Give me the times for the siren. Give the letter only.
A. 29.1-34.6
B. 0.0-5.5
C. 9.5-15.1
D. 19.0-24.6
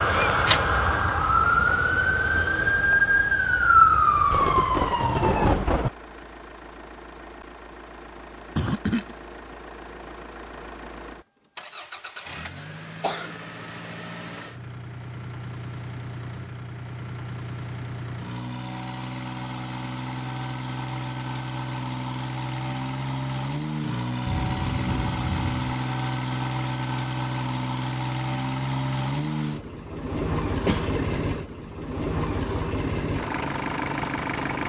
B.